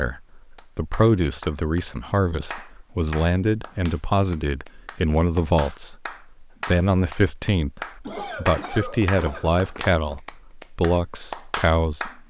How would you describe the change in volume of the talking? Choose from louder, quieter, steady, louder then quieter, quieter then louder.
steady.